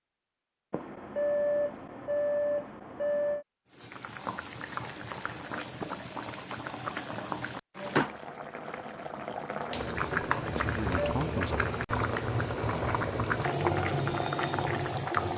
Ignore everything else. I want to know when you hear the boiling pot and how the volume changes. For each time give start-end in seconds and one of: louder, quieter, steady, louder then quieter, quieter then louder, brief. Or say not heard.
3.7-15.3 louder.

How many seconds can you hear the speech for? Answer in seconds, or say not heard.
2 s.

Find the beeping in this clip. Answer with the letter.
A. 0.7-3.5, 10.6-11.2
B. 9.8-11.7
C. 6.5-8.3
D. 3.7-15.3
A.